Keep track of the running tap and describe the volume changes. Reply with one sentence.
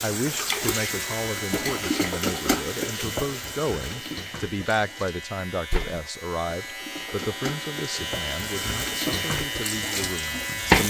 The loudness of the running tap goes down, then up.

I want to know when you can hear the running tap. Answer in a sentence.
The running tap can be heard from 0.0 to 10.8 s.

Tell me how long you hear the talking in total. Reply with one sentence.
The talking can be heard for 11 seconds in total.